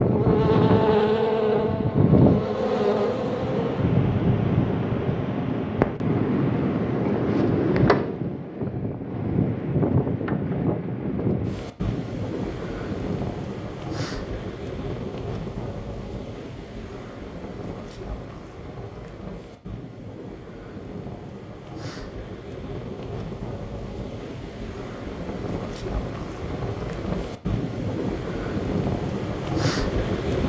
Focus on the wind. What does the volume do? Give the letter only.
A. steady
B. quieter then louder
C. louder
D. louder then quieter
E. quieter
B.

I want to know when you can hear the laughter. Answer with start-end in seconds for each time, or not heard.
not heard.